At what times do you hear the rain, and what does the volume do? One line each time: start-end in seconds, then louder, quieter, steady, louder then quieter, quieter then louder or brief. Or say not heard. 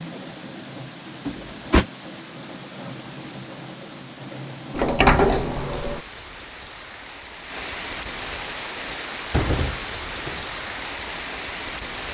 0.0-12.0 louder.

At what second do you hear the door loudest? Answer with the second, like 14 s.
5 s.